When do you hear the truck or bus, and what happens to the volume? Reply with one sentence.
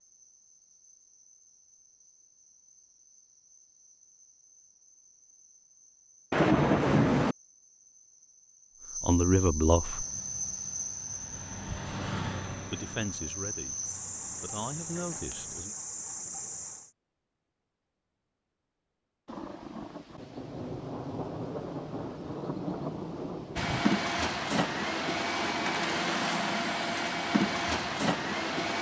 You can hear the truck or bus from 9.8 to 15.7 s, getting louder then quieter; and from 23.6 to 28.7 s, at a steady volume.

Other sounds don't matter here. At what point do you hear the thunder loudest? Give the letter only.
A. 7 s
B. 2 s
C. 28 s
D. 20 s
A.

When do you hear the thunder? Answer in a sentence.
You can hear the thunder from 6.3 to 7.3 s and from 19.2 to 23.9 s.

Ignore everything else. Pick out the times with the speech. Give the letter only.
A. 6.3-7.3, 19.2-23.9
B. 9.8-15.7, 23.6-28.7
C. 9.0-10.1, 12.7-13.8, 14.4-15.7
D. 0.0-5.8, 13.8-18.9
C.